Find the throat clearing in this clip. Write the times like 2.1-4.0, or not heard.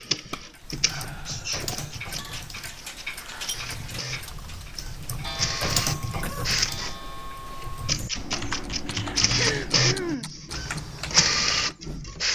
1.2-1.9, 6.0-6.5, 8.8-10.3.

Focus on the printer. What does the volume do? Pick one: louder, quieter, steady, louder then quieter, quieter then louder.
louder.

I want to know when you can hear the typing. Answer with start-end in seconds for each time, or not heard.
0.6-11.8.